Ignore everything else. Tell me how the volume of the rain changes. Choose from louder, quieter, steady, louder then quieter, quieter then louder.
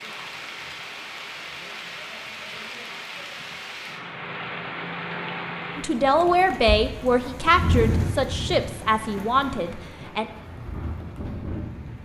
louder then quieter.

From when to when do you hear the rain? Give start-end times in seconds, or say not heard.
0.0-12.0.